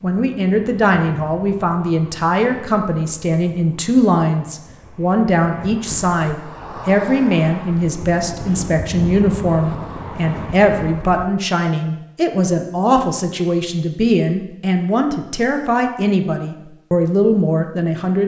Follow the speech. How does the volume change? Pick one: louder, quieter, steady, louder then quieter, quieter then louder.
steady.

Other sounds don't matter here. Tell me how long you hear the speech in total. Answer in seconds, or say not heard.
18 s.